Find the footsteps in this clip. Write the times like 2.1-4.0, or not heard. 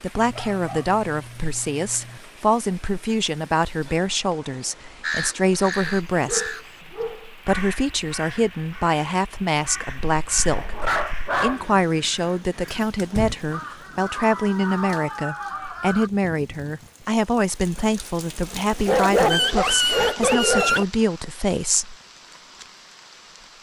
not heard.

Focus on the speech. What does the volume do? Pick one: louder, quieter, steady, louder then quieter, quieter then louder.
steady.